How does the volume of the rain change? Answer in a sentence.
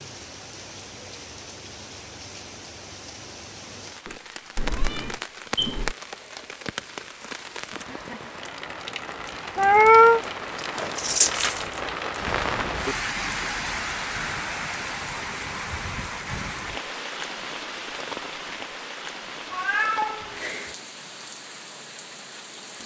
The loudness of the rain goes up, then down.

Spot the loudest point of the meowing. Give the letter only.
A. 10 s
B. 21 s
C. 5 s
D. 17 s
A.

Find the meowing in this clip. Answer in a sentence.
You can hear the meowing from 4.0 to 6.0 s, from 9.6 to 10.2 s and from 19.5 to 20.8 s.